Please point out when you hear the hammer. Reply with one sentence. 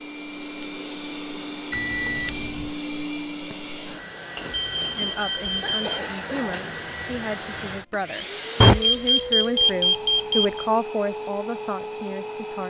You can't hear the hammer here.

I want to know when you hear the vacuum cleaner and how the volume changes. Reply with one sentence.
The vacuum cleaner can be heard from 0.0 to 12.6 s, at a steady volume.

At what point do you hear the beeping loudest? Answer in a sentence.
The volume of the beeping peaks at 9 seconds.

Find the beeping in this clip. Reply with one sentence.
The beeping can be heard from 1.7 to 2.7 s, from 4.5 to 6.0 s and from 8.6 to 10.7 s.